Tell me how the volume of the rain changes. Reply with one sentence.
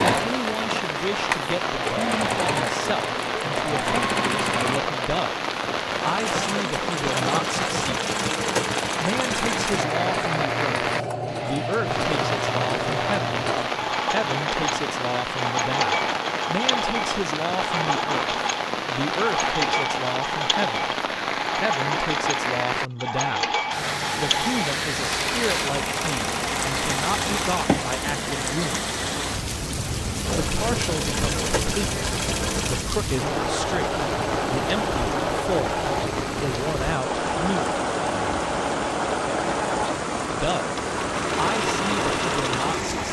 The loudness of the rain stays about the same.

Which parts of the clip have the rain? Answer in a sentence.
The rain can be heard from 0.0 to 43.0 s.